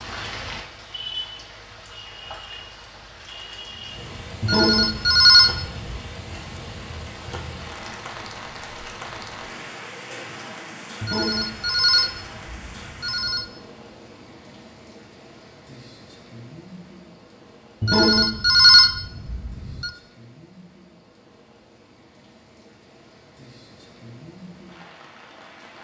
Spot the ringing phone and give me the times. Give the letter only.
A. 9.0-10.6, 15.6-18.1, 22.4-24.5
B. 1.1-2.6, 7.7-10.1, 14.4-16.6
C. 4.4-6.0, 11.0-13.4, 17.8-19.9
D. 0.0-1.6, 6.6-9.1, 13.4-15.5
C.